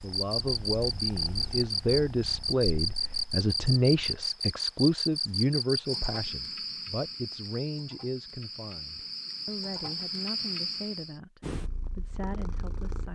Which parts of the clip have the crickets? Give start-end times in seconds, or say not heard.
0.0-11.2.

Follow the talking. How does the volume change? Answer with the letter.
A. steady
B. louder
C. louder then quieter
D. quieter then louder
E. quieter
E.